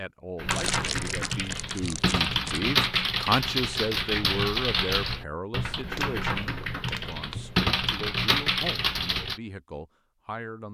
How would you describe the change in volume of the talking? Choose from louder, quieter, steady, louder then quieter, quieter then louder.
louder then quieter.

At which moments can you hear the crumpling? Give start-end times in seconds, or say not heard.
0.5-2.6, 6.0-7.5.